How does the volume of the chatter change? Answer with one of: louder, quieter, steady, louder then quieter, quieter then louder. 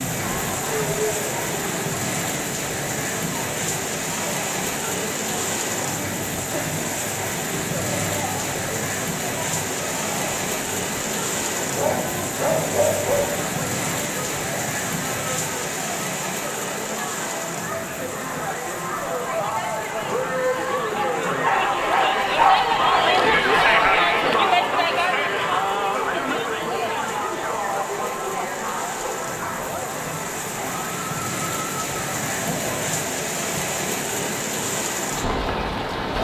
louder then quieter.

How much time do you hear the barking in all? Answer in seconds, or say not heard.
3 s.